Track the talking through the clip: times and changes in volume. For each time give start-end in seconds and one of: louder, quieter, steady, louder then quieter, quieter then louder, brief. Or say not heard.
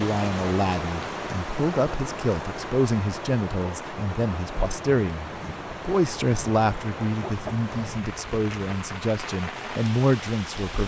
0.0-10.8 steady.